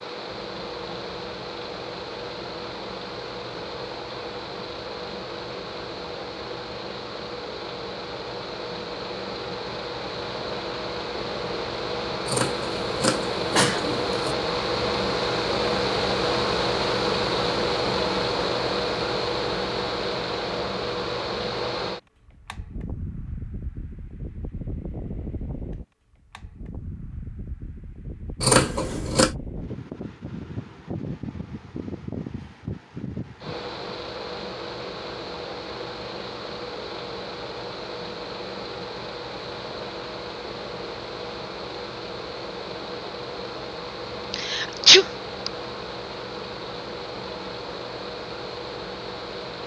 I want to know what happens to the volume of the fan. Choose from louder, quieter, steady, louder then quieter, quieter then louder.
louder then quieter.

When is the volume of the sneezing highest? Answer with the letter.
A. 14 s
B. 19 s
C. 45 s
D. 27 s
C.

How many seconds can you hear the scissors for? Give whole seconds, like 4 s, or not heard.
3 s.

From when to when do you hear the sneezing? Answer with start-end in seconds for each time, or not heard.
12.9-13.8, 44.3-45.5.